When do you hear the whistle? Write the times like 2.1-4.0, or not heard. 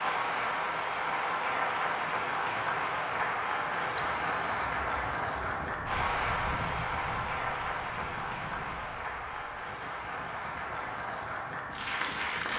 4.0-4.7.